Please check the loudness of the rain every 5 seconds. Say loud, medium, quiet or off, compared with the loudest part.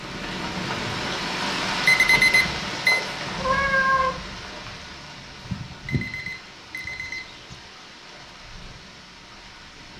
loud, quiet.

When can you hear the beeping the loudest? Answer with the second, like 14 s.
2 s.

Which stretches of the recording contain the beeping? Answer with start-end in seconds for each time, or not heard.
1.9-3.0, 5.4-7.5.